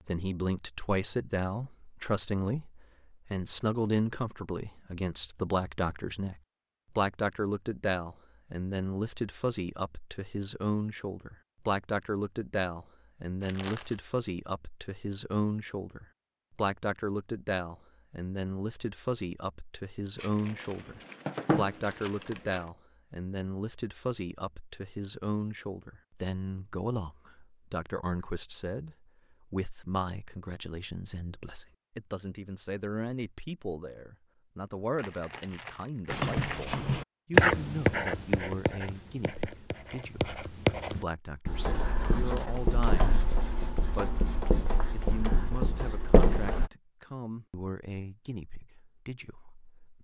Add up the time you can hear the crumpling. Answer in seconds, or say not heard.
5 s.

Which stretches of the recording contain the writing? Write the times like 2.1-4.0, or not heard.
36.1-46.7.